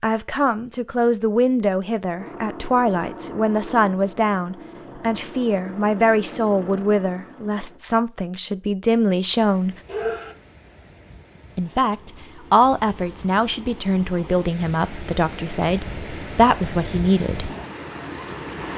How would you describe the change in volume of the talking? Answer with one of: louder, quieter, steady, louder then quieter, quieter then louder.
steady.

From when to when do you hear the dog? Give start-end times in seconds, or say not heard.
9.8-10.3.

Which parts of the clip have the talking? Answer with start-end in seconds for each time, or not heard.
0.0-9.8, 11.6-17.5.